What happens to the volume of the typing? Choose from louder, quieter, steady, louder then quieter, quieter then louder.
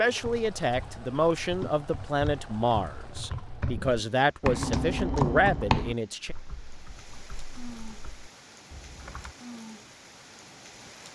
louder then quieter.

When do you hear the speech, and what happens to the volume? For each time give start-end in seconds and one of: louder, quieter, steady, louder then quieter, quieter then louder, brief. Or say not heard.
0.0-6.3 steady.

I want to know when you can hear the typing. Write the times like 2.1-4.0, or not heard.
0.2-9.3.